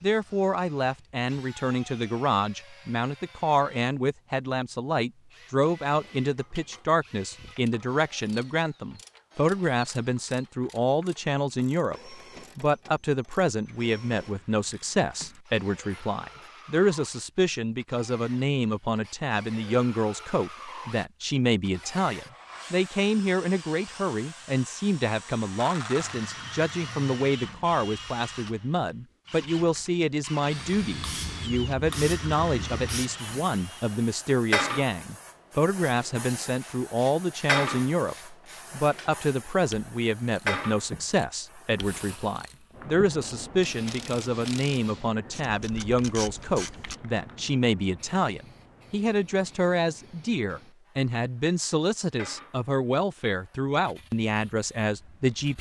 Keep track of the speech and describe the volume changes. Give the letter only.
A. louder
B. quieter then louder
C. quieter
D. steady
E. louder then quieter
D.